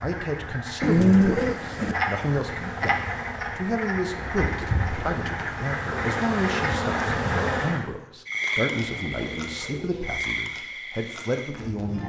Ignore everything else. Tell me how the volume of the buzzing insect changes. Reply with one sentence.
The loudness of the buzzing insect goes up.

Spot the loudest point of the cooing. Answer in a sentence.
The loudest moment of the cooing is at 1 second.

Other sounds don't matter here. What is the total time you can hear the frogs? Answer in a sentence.
The frogs can be heard for 12 seconds in total.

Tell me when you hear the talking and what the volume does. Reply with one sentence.
The talking can be heard from 0.0 to 12.0 s, at a steady volume.